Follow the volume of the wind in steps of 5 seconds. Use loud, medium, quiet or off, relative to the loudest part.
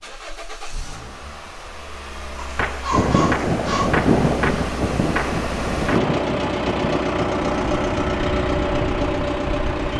loud, medium.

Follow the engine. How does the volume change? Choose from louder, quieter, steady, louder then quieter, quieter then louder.
louder.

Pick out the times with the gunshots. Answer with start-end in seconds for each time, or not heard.
2.5-6.0.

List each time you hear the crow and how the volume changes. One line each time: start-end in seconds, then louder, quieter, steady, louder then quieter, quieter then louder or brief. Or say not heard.
not heard.